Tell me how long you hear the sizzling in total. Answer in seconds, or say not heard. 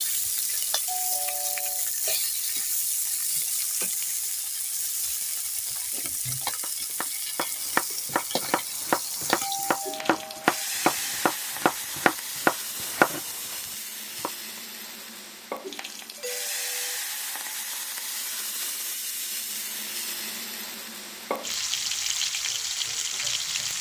24 s.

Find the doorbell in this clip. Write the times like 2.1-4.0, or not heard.
0.8-2.6, 9.4-10.5, 16.1-16.9.